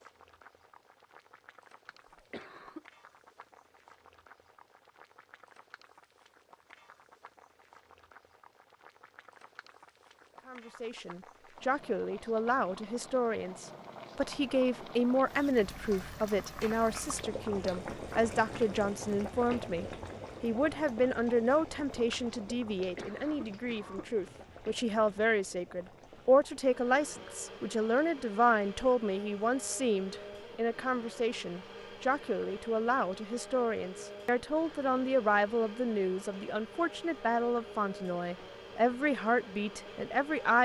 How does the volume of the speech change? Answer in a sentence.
The loudness of the speech stays about the same.